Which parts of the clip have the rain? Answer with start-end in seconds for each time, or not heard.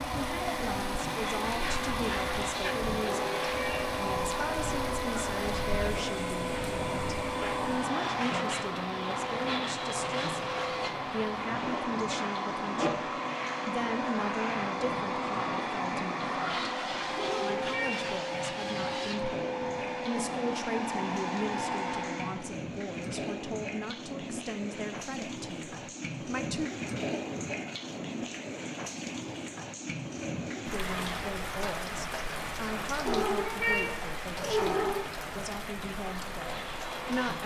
0.0-37.4.